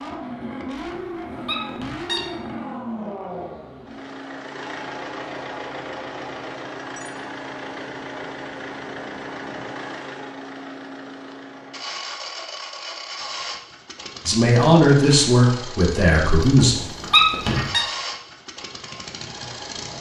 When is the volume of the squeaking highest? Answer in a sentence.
The loudest moment of the squeaking is at 17 seconds.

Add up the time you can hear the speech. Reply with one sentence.
The speech can be heard for 3 seconds in total.